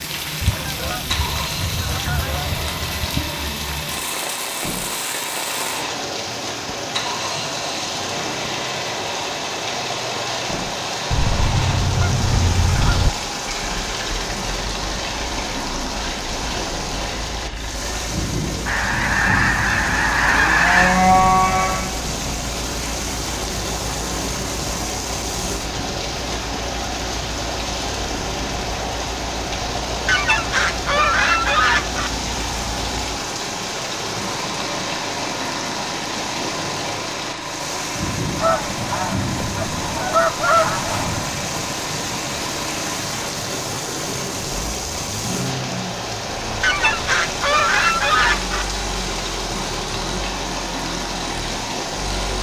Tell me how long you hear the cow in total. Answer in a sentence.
You can hear the cow for 2 seconds altogether.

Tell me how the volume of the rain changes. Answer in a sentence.
The loudness of the rain stays about the same.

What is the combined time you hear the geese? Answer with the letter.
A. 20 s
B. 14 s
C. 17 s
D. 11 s
B.